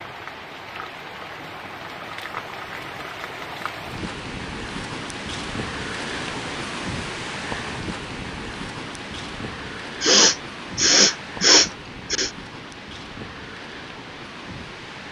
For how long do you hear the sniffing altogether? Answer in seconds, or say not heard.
2 s.